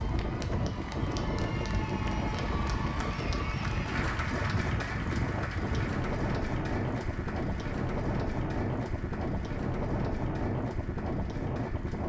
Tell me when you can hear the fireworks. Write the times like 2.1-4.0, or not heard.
not heard.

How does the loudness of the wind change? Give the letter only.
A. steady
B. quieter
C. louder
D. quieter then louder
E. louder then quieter
A.